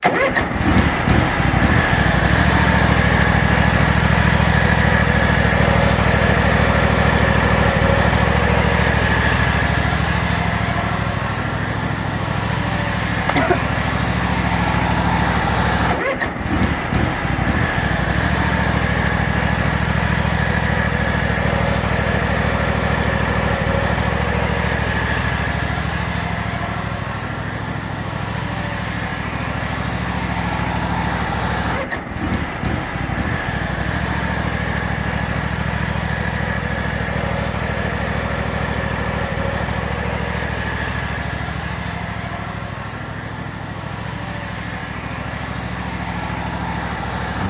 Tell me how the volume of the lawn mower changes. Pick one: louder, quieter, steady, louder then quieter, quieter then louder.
quieter.